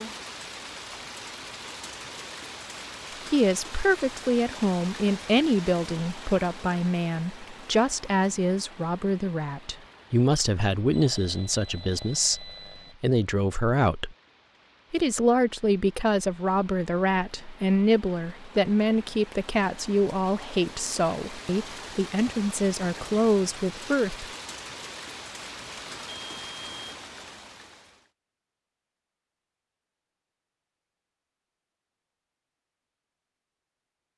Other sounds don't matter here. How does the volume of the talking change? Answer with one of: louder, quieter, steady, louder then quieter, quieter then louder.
steady.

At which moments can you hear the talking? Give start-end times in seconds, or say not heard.
3.3-14.2, 14.9-24.2.